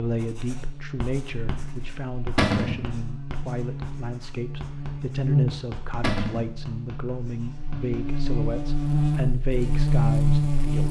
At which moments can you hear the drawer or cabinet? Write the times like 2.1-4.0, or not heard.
2.4-2.9, 6.0-6.5.